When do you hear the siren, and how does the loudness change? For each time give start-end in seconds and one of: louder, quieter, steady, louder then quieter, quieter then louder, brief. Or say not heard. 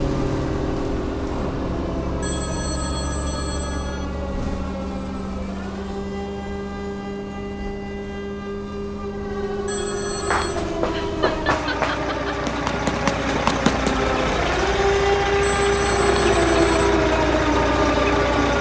0.2-18.5 louder.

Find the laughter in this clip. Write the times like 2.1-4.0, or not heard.
10.9-12.3.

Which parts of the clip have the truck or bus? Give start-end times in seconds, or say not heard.
0.0-18.5.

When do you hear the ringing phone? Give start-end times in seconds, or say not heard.
2.2-4.0, 9.7-10.7, 15.4-16.8.